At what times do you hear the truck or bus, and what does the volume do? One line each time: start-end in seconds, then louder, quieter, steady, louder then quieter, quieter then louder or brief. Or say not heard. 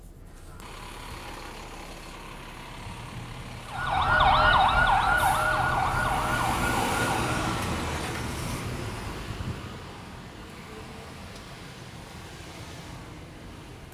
0.0-13.8 louder then quieter.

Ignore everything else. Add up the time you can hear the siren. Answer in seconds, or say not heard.
4 s.